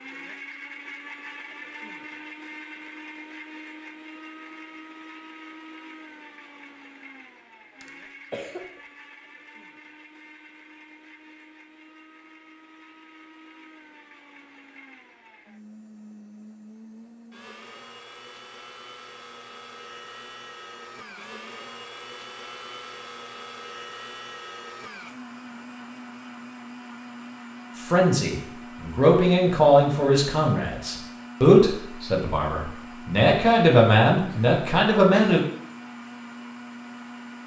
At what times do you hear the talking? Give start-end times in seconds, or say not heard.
27.8-35.4.